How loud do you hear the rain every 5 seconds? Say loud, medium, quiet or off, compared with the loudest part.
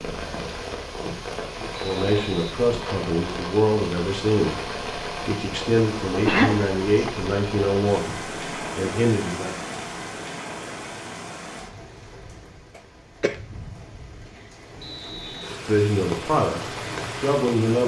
loud, loud, medium, loud.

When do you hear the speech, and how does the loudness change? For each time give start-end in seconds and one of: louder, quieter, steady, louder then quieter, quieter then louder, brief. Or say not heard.
1.6-9.6 steady
15.3-17.8 brief.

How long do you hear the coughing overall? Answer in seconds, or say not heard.
2 s.